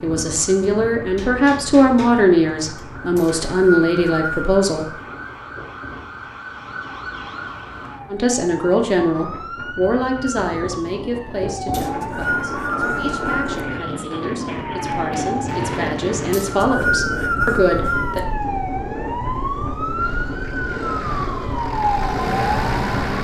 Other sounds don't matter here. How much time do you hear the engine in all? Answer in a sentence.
The engine can be heard for 3 seconds in total.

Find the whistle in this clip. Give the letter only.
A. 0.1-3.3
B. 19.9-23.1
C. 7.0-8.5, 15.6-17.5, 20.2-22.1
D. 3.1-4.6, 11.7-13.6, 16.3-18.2
D.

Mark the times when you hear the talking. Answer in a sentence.
You can hear the talking from 0.0 to 4.8 s and from 8.1 to 18.2 s.